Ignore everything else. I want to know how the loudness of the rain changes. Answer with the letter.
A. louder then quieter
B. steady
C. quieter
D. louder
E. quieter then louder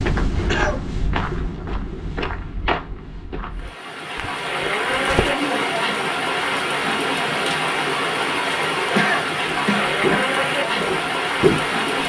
B.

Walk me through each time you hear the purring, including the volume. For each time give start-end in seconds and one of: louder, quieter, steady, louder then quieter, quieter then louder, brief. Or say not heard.
not heard.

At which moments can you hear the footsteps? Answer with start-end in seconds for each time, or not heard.
0.0-3.8, 9.4-11.7.